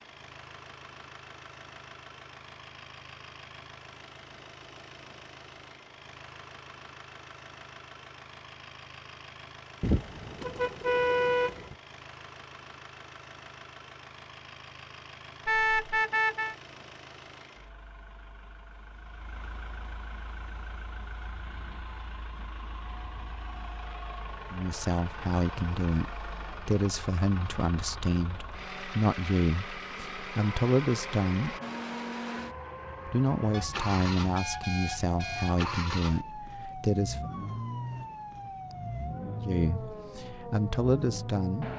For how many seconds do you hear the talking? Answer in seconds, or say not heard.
14 s.